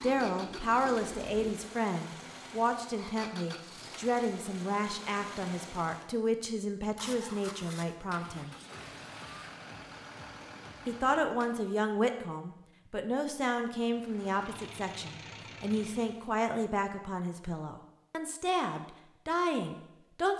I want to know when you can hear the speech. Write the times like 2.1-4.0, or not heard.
0.0-8.6, 10.8-20.3.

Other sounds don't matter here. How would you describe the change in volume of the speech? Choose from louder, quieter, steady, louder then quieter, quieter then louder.
steady.